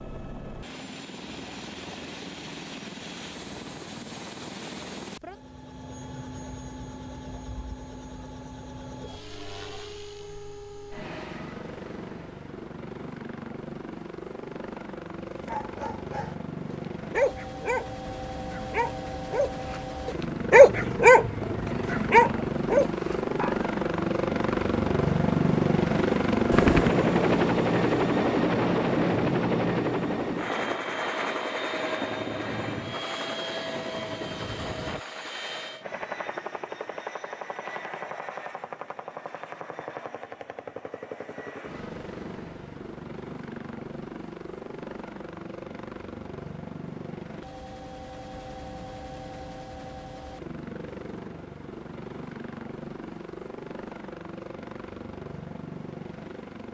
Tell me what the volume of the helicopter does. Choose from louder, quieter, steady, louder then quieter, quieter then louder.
louder then quieter.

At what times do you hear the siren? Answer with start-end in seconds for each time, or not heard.
not heard.